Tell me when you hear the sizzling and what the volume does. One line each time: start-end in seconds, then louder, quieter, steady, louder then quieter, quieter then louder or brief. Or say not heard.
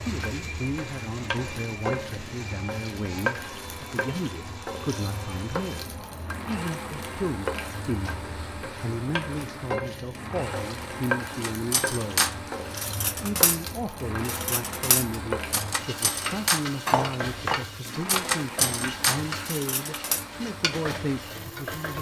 0.0-21.9 steady.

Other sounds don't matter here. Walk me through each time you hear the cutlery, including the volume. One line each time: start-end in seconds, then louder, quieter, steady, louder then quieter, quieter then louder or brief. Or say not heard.
11.4-20.2 steady.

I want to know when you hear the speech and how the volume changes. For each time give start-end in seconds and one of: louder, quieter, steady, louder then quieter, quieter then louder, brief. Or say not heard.
0.0-12.3 steady
13.2-21.9 steady.